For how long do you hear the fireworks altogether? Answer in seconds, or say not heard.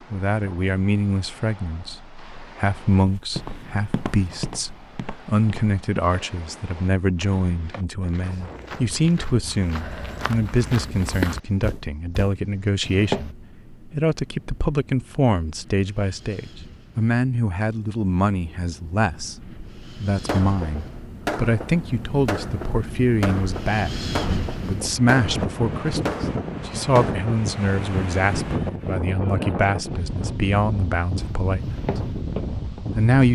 7 s.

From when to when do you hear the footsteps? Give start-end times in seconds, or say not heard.
3.0-13.3, 31.1-33.0.